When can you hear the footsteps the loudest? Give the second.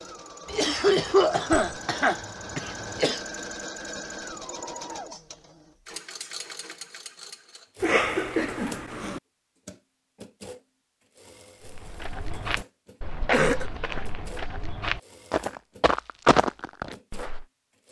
16 s.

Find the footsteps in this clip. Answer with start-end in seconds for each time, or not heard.
11.7-17.4.